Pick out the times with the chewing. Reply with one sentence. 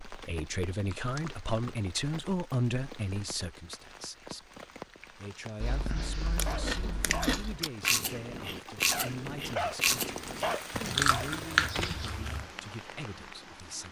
The chewing can be heard from 6.3 to 12.4 s.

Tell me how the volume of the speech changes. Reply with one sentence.
The loudness of the speech goes down.